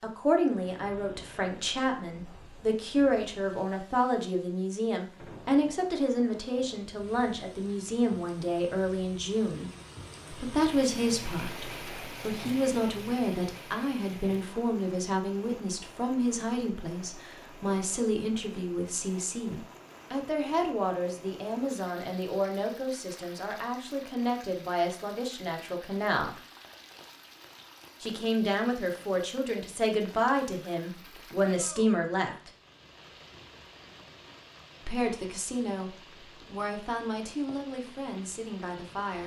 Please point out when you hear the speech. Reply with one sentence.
You can hear the speech from 0.0 to 9.7 s, from 10.3 to 26.4 s, from 28.0 to 32.5 s and from 34.9 to 39.2 s.